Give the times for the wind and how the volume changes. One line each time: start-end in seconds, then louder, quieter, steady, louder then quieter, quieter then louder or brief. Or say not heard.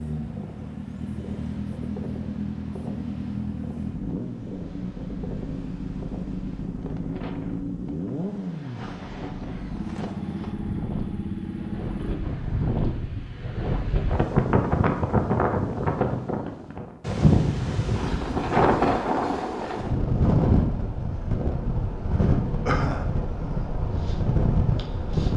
0.0-25.3 louder.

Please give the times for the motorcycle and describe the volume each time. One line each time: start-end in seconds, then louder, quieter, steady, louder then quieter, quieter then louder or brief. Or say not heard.
0.0-12.2 steady.